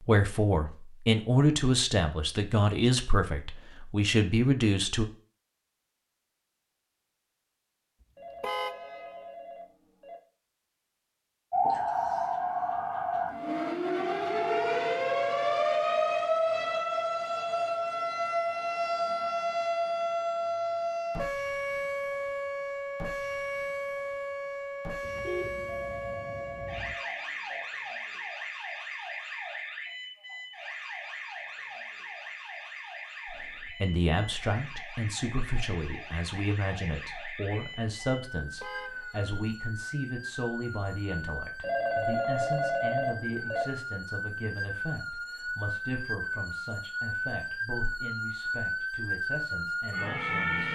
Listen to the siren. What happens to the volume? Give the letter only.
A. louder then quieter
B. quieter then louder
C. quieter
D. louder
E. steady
B.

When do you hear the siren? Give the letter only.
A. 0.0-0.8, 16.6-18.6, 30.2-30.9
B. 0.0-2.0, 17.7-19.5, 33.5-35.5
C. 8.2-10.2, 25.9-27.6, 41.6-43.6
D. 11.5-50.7
D.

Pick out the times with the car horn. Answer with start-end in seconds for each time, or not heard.
8.4-9.2, 25.0-26.9, 38.6-39.4.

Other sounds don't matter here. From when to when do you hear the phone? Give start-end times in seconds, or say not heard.
8.2-10.2, 25.9-27.6, 41.6-43.6.